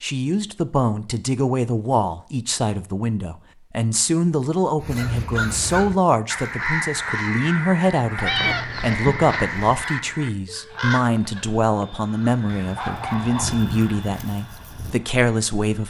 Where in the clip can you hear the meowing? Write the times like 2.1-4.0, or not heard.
8.2-9.6.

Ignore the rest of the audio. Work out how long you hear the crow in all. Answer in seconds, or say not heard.
10 s.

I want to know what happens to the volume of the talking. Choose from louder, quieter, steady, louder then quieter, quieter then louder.
steady.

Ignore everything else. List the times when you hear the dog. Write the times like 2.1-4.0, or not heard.
12.8-13.7.